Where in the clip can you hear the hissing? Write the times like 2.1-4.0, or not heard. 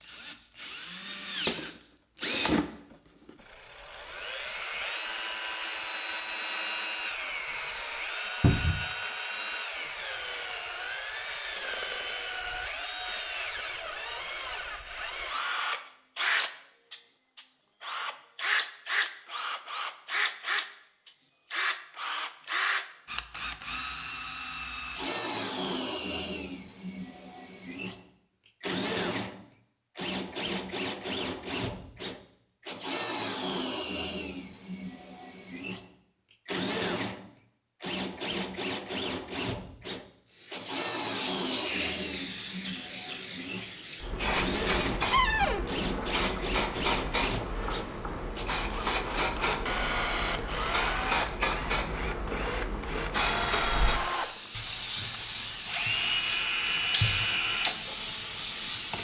40.3-59.0.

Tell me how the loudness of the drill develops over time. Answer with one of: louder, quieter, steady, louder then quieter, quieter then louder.
steady.